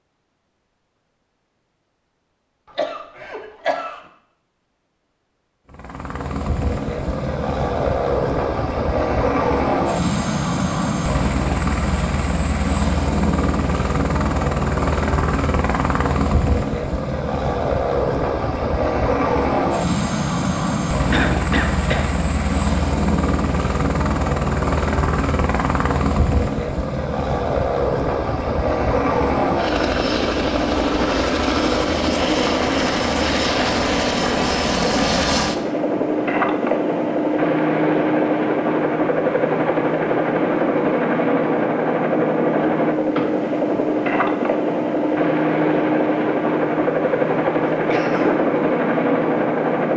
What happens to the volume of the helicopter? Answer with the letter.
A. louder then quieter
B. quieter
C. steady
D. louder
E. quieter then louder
C.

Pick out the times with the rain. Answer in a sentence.
You can't hear the rain here.